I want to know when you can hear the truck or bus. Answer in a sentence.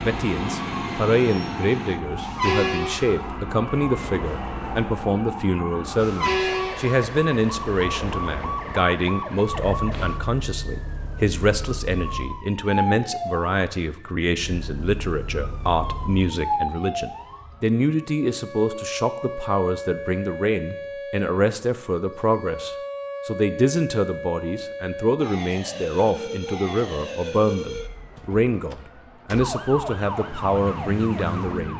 You can hear the truck or bus from 0.0 to 12.4 s and from 14.3 to 16.4 s.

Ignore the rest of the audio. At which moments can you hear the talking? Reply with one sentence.
You can hear the talking from 0.0 to 31.7 s.